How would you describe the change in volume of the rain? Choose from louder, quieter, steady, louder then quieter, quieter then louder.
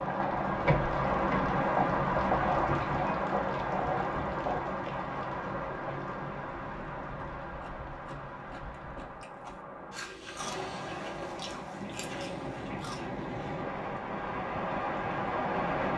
quieter then louder.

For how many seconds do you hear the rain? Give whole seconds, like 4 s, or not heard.
16 s.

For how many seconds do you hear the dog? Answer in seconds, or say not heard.
not heard.